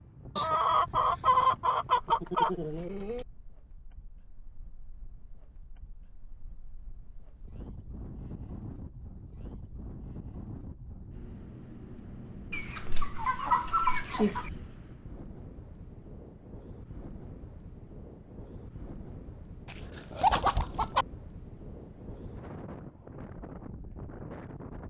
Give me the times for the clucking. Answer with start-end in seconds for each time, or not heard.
0.3-3.2, 12.5-14.5, 19.6-21.1.